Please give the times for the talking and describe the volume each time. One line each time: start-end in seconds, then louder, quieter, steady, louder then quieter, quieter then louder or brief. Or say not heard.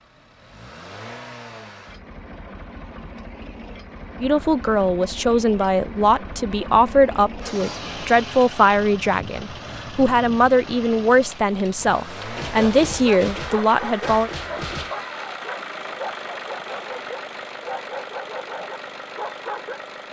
4.2-14.3 steady.